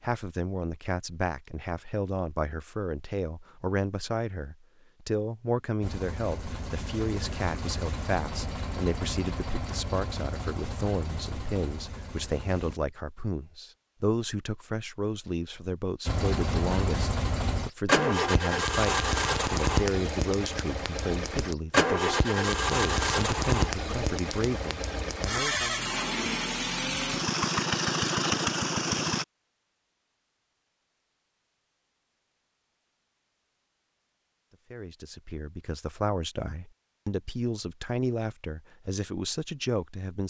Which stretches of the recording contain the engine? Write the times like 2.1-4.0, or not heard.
5.8-12.8, 16.1-29.2.